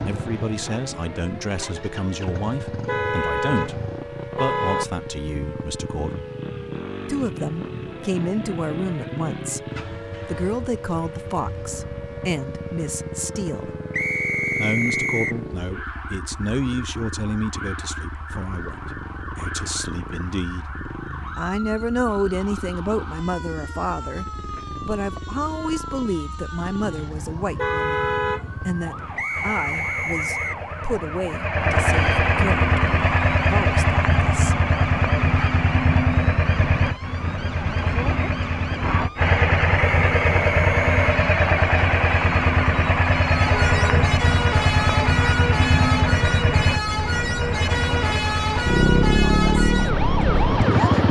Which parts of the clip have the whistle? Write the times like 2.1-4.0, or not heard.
13.9-15.4, 29.1-30.6, 40.0-41.1.